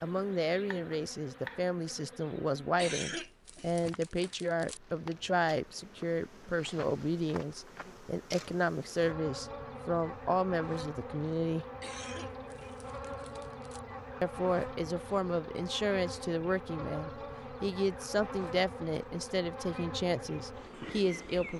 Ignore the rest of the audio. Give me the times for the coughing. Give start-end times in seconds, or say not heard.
2.8-4.8, 11.8-13.8.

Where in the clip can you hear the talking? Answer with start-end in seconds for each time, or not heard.
0.0-11.7, 14.2-21.5.